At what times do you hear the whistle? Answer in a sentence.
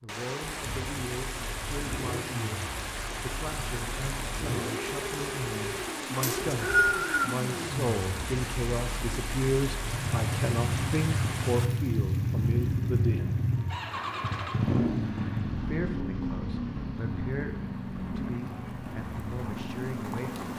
You can hear the whistle from 6.2 to 7.3 s.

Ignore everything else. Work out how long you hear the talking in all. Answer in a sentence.
The talking can be heard for 18 seconds in total.